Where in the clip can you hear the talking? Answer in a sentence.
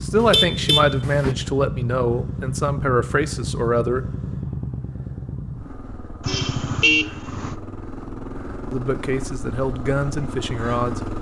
The talking can be heard from 0.0 to 4.0 s and from 8.7 to 11.0 s.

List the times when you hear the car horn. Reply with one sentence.
You can hear the car horn from 0.1 to 1.4 s and from 6.2 to 7.5 s.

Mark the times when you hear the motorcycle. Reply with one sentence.
The motorcycle can be heard from 0.0 to 11.1 s.